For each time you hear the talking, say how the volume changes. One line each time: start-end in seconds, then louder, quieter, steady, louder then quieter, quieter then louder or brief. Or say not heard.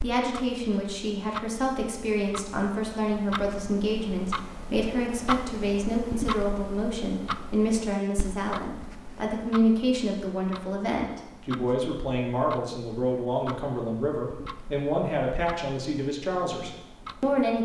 0.0-17.6 steady.